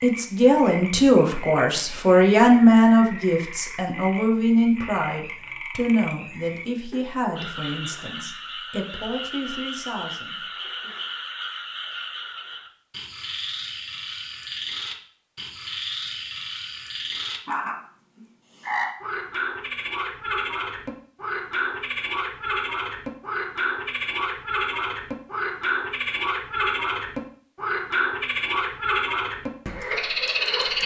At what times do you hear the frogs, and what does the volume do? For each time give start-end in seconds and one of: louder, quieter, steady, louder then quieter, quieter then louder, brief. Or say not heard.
0.0-30.8 louder.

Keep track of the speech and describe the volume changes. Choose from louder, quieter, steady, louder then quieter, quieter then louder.
quieter.